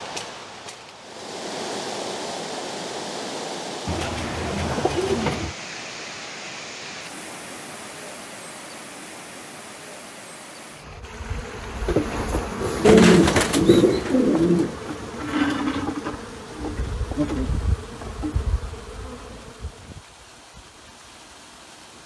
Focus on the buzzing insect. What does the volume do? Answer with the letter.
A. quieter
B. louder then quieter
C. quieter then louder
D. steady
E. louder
A.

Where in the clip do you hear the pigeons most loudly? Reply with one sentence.
The loudest moment of the pigeons is at 13 seconds.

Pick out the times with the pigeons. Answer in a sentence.
You can hear the pigeons from 3.9 to 5.5 s and from 12.8 to 14.7 s.